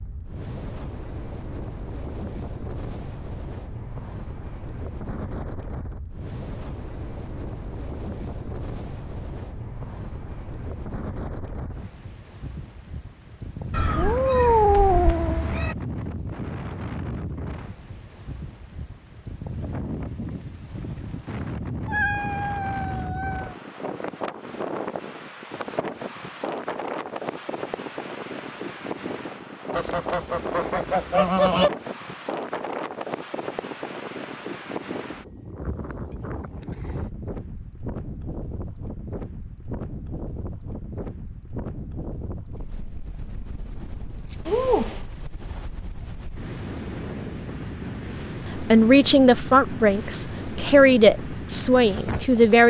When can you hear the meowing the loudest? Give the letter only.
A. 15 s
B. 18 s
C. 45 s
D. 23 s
A.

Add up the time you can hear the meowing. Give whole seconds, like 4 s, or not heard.
4 s.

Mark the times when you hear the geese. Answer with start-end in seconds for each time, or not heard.
29.7-31.7.